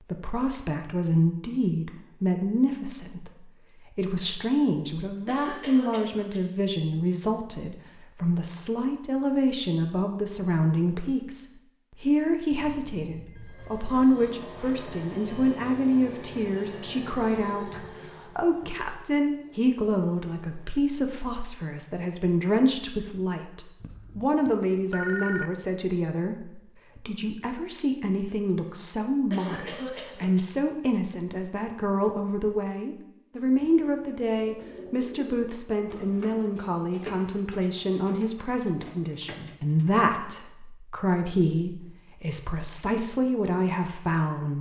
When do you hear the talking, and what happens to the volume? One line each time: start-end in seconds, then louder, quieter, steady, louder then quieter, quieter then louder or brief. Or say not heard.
0.1-44.5 steady.